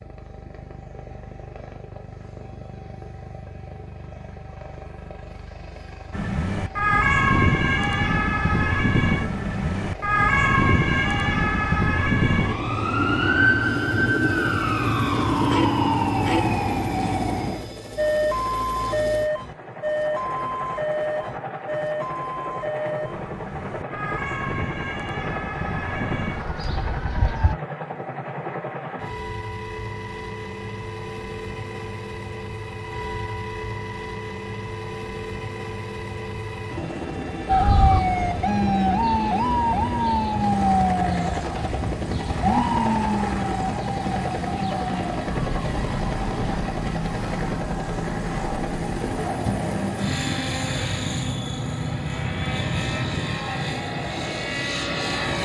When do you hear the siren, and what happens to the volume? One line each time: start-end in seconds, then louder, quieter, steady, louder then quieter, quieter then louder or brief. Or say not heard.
6.1-27.6 quieter
37.5-55.4 quieter.